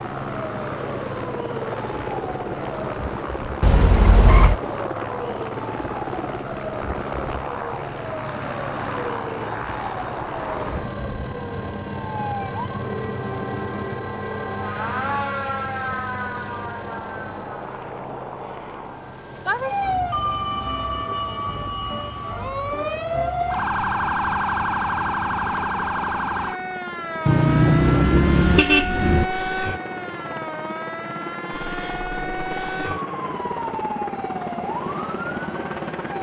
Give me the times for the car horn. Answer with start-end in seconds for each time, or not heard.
3.6-4.6, 27.2-29.2.